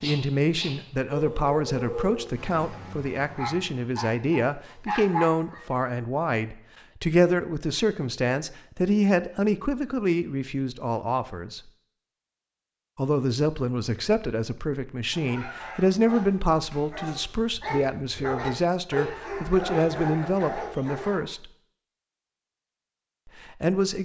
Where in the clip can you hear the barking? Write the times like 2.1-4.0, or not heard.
0.0-5.8, 15.1-21.2.